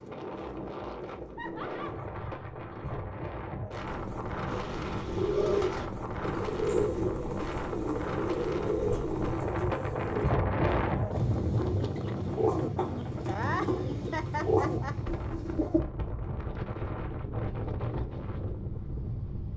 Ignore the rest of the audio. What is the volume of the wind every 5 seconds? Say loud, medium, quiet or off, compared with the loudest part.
medium, loud, loud, medium.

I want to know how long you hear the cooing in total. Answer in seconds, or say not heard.
11 s.